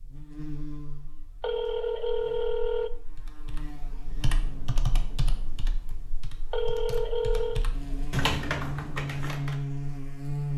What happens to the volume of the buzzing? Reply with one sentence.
The loudness of the buzzing goes down, then up.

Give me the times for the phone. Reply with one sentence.
You can hear the phone from 1.4 to 2.9 s and from 6.5 to 7.7 s.